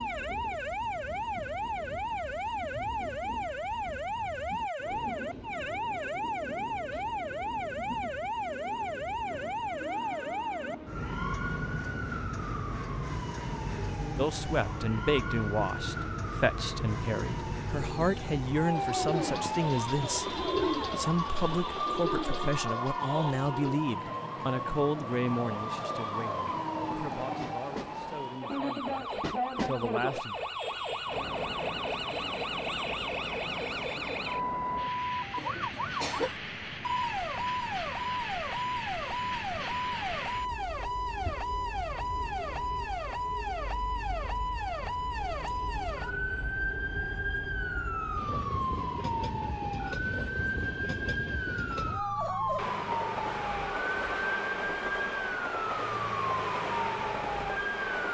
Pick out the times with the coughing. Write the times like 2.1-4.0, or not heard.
35.4-36.3.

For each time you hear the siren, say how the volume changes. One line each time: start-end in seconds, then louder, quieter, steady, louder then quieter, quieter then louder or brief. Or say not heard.
0.0-58.1 steady.